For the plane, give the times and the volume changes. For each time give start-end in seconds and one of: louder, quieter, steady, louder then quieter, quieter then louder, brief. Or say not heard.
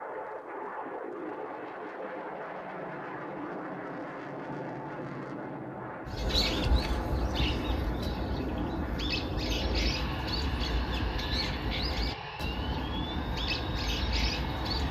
0.0-14.8 steady.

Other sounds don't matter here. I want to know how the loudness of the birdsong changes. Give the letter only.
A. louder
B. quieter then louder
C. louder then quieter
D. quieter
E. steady
E.